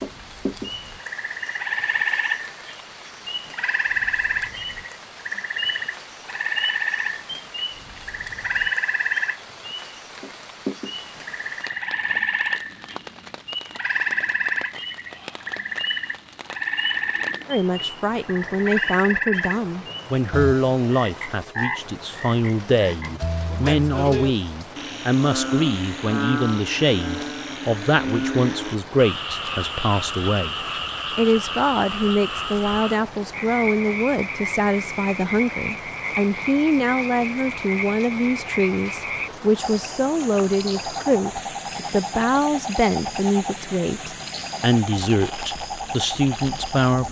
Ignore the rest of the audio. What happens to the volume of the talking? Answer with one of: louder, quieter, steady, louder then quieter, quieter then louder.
steady.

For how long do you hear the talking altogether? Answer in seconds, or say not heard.
29 s.